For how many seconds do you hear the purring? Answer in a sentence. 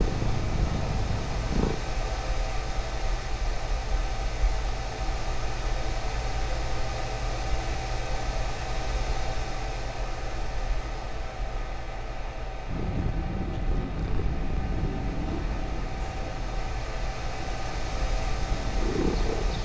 The purring can be heard for 9 seconds in total.